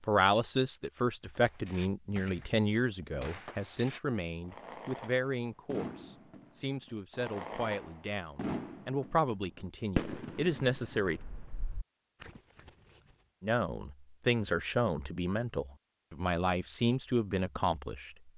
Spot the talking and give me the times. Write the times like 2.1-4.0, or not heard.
0.1-11.2, 13.4-18.3.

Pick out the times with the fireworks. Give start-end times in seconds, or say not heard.
1.3-12.7.